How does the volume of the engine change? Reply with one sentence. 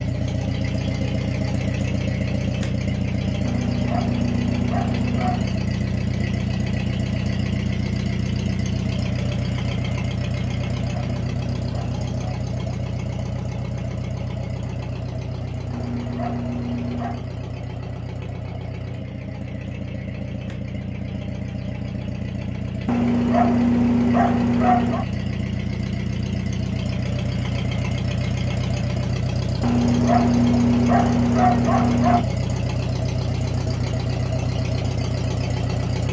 The loudness of the engine goes down, then up.